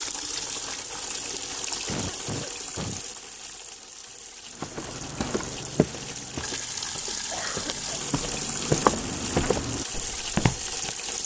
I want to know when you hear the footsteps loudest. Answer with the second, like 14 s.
9 s.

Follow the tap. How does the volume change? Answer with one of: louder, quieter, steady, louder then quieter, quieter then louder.
quieter then louder.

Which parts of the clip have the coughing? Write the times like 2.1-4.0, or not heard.
1.9-3.0, 7.3-7.9.